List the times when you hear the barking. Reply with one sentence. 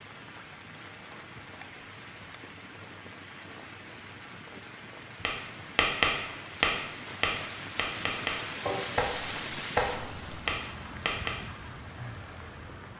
The barking can't be heard in this clip.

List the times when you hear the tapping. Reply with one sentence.
The tapping can be heard from 5.2 to 11.3 s.